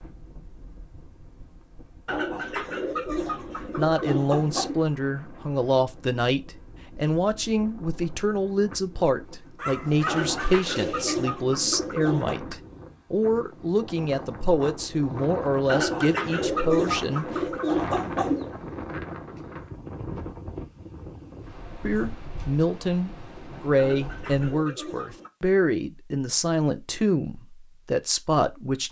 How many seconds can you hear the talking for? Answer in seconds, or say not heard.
21 s.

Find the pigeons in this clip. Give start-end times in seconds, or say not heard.
2.0-4.8, 10.1-12.3, 15.7-18.5, 23.8-25.3.